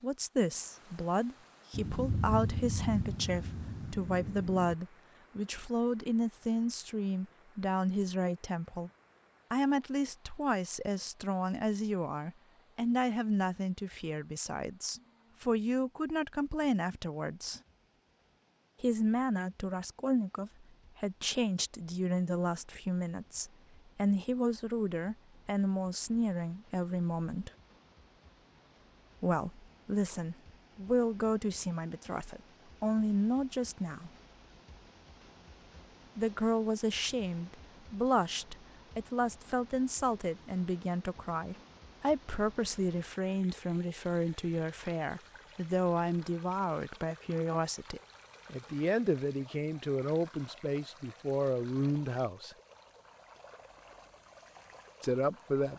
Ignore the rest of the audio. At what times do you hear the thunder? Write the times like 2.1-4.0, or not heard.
1.7-4.8.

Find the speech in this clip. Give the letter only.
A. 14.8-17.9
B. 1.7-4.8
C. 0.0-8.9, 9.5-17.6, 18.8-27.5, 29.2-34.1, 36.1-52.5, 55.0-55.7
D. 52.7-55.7
C.